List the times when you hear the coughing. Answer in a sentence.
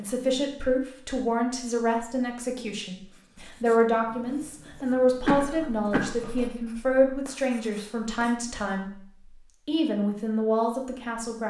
The coughing can be heard from 5.2 to 7.2 s.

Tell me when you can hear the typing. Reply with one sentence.
You can't hear the typing here.